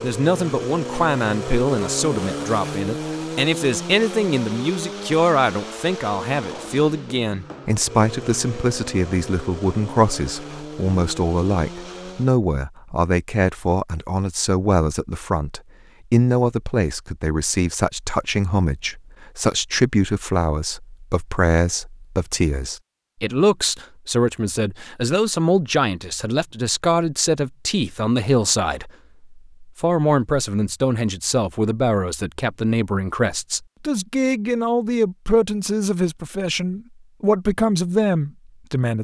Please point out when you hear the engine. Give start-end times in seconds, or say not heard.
0.0-12.3.